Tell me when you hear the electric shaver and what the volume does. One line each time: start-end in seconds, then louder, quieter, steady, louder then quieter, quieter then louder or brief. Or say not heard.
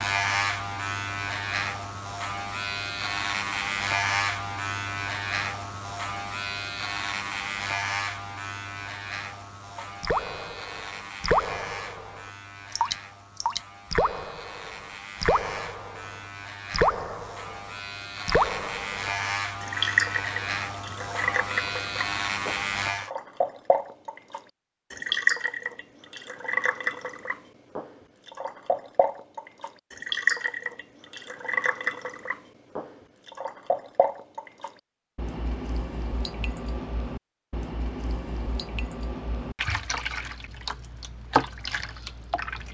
0.0-23.1 quieter then louder.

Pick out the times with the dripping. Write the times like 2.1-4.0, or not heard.
9.8-42.7.